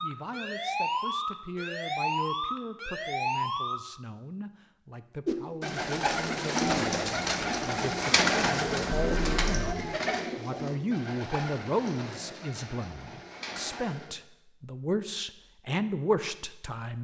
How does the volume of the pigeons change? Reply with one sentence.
The volume of the pigeons goes down.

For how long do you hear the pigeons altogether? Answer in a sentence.
The pigeons can be heard for 9 seconds in total.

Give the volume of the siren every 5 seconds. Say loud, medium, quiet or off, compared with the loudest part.
loud, medium, off, off.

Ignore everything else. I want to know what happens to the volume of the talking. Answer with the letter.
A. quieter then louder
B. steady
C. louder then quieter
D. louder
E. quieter
D.